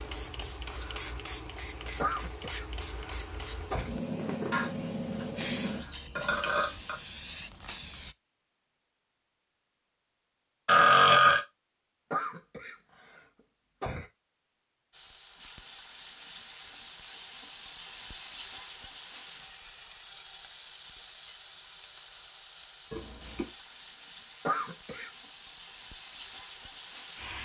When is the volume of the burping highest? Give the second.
11 s.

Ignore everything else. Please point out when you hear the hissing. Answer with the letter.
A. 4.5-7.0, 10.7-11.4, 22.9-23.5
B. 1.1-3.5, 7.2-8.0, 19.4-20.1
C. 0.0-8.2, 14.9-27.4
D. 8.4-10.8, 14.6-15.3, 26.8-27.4
C.